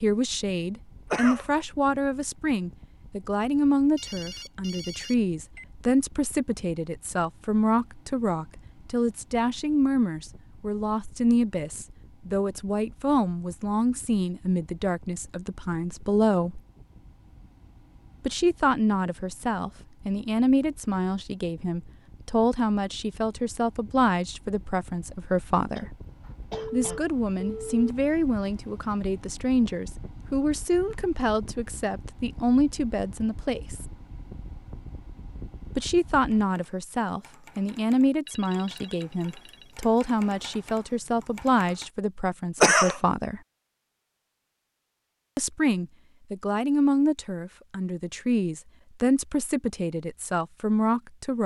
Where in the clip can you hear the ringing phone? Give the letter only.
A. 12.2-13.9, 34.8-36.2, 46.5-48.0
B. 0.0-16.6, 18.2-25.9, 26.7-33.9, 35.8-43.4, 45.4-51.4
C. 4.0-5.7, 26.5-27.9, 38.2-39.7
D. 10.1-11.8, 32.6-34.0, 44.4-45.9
C.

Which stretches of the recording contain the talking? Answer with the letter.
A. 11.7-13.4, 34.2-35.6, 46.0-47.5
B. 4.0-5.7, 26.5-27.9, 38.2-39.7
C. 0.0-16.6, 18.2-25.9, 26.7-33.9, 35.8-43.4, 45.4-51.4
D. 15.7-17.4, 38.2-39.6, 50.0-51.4
C.